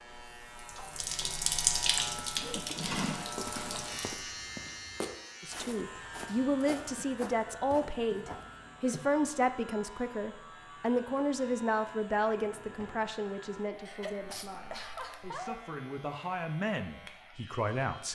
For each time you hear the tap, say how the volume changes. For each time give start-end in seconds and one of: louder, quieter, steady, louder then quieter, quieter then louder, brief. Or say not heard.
0.1-4.2 louder then quieter.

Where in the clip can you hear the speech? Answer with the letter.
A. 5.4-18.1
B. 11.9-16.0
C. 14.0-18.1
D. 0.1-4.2
A.